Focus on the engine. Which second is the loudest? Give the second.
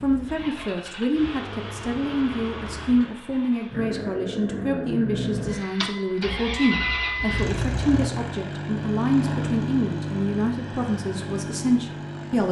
7 s.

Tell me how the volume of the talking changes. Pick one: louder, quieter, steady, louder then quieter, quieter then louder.
steady.